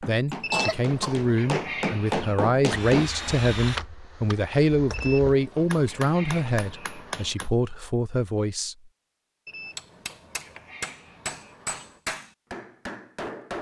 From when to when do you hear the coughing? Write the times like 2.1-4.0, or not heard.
0.3-1.2.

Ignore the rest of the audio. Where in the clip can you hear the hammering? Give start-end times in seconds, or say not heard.
0.0-3.1, 5.5-7.5, 9.7-13.5.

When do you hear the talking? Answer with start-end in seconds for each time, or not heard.
0.0-8.9.